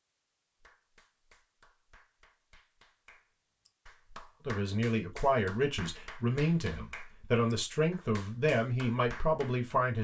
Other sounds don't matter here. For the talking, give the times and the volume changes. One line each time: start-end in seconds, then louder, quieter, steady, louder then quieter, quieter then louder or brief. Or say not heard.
4.5-9.9 steady.